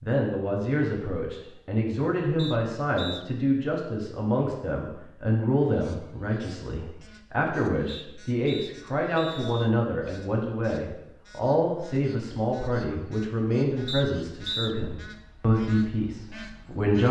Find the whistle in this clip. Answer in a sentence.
The whistle can be heard from 2.4 to 3.2 s, from 7.8 to 9.7 s and from 13.8 to 14.8 s.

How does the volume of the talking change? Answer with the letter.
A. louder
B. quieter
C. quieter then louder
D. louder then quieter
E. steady
E.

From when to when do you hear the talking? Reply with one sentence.
The talking can be heard from 0.0 to 17.0 s.